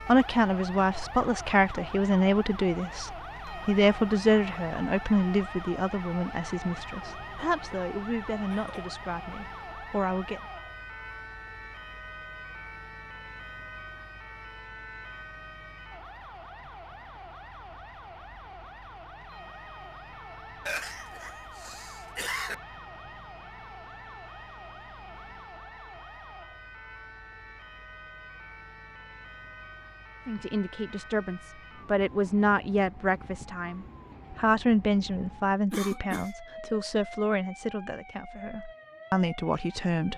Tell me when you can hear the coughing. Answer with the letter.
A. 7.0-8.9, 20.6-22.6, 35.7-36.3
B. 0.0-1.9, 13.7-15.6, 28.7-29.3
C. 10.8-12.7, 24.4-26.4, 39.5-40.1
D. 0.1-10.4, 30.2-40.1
A.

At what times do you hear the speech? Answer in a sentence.
The speech can be heard from 0.1 to 10.4 s and from 30.2 to 40.1 s.